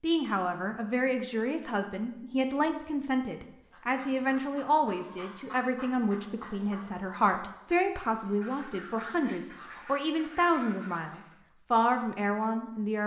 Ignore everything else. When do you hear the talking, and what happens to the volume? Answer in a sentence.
The talking can be heard from 0.0 to 13.0 s, at a steady volume.